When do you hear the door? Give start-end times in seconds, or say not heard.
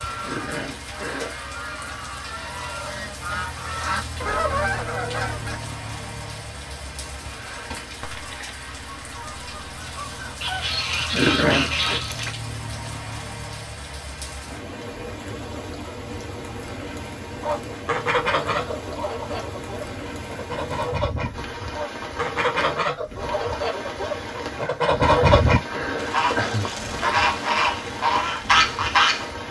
not heard.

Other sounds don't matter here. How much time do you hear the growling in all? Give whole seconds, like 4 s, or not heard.
4 s.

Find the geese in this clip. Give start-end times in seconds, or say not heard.
0.0-5.6, 7.5-12.3, 17.4-29.3.